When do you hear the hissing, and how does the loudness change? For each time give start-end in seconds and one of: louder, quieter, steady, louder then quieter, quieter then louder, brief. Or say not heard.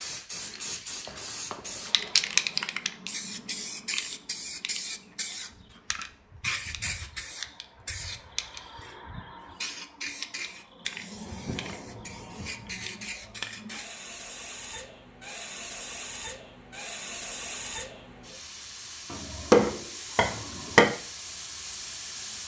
0.0-22.4 quieter.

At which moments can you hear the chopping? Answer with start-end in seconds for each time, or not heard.
19.1-20.9.